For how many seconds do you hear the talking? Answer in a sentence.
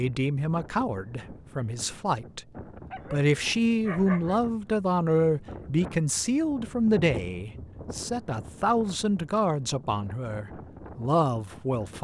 You can hear the talking for 11 seconds altogether.